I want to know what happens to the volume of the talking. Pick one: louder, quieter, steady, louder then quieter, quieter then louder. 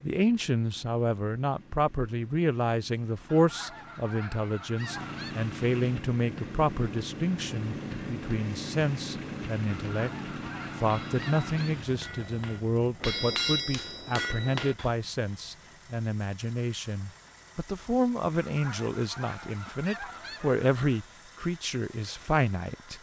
steady.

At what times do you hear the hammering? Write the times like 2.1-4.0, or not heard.
5.8-14.9.